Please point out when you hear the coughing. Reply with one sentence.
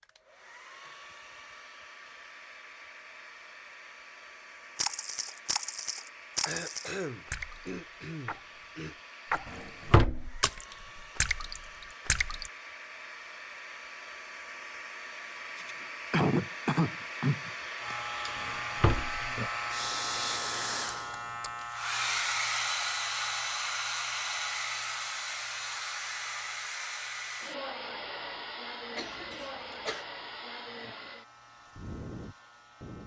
You can hear the coughing from 6.5 to 8.9 s, from 15.6 to 17.9 s and from 28.9 to 30.1 s.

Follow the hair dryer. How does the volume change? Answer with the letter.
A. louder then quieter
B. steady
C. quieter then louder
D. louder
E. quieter
A.